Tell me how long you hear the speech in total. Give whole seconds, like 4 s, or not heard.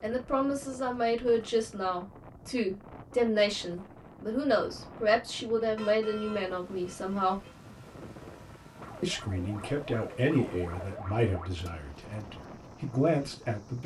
12 s.